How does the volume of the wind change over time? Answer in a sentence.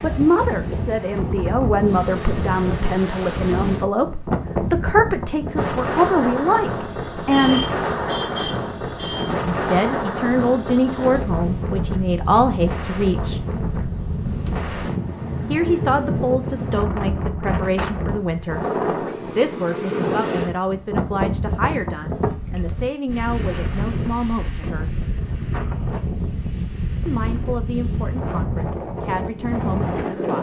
The volume of the wind stays about the same.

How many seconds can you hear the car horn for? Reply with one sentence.
The car horn can be heard for 2 seconds in total.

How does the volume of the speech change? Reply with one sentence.
The volume of the speech goes down.